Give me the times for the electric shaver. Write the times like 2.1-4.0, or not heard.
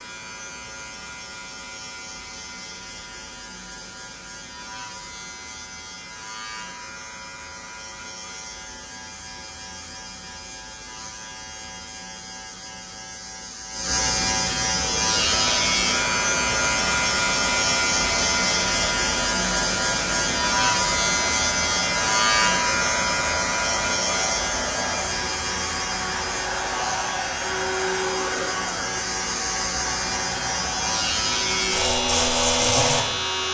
0.0-33.4.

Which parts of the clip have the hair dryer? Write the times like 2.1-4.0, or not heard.
15.0-33.4.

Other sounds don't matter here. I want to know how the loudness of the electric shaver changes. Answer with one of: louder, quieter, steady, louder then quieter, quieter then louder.
louder.